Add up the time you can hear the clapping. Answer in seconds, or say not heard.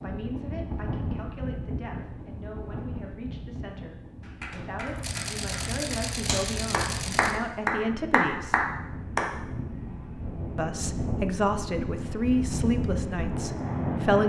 5 s.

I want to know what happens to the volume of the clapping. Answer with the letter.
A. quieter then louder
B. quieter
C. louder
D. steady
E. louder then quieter
C.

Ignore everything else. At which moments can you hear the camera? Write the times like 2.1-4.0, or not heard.
4.8-7.4.